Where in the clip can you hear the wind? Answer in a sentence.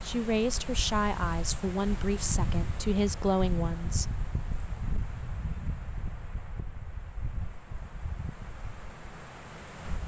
You can hear the wind from 0.0 to 10.0 s.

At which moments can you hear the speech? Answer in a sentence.
You can hear the speech from 0.0 to 4.0 s.